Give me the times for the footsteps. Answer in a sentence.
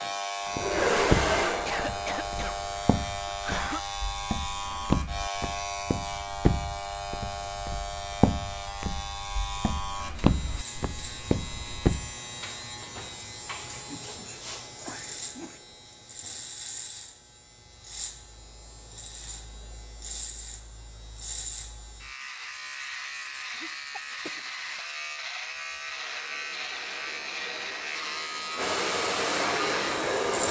The footsteps can be heard from 0.6 to 12.1 s.